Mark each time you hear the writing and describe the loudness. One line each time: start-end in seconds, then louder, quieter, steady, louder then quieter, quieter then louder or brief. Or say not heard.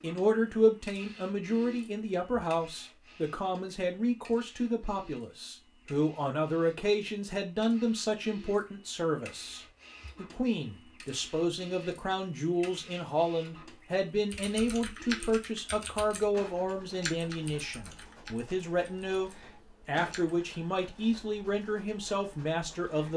not heard.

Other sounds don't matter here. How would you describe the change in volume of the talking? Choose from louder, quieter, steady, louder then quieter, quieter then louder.
steady.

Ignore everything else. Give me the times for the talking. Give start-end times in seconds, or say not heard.
0.0-23.1.